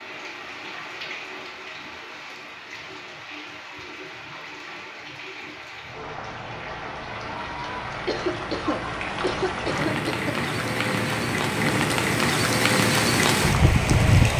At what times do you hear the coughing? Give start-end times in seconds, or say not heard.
8.1-10.3.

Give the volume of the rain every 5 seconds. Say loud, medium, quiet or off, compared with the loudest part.
quiet, medium, loud.